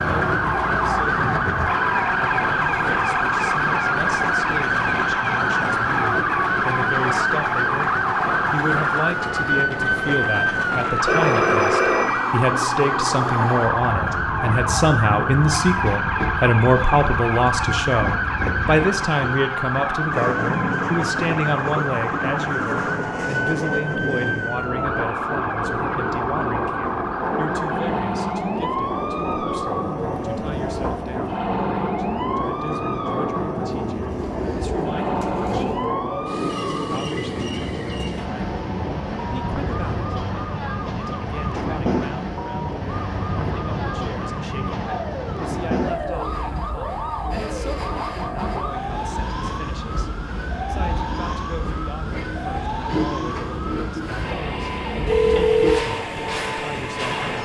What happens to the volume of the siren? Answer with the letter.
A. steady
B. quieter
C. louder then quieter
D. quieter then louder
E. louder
B.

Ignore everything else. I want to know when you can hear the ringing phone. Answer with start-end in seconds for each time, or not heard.
11.1-12.3, 55.0-55.9.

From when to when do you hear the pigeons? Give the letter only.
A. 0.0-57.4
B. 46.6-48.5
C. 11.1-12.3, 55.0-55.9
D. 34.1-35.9
D.